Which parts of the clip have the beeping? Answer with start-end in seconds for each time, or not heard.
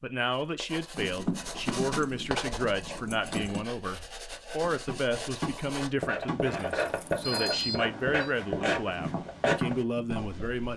7.2-8.3.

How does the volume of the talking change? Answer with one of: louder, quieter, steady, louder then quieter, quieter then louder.
steady.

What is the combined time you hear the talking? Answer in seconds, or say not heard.
11 s.